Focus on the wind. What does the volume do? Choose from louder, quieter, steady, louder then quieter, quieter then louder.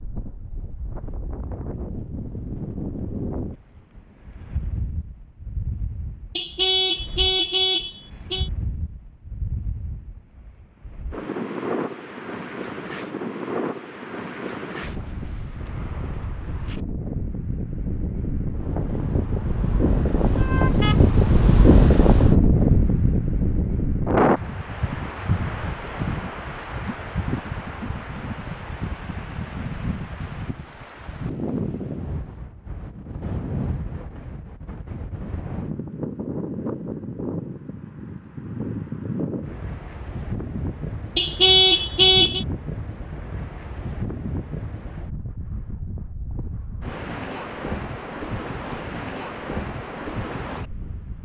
louder then quieter.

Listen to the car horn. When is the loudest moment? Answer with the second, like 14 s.
42 s.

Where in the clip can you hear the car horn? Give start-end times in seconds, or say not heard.
6.3-8.5, 20.1-21.6, 41.1-42.5.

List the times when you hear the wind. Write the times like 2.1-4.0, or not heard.
0.0-51.1.